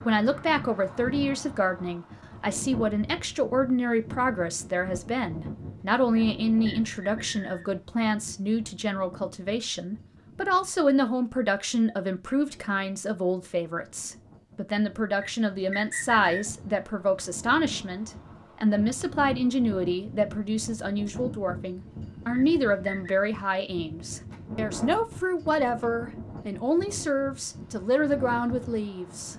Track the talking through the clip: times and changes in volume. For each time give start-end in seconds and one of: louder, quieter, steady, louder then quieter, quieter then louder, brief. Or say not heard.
0.1-29.3 steady.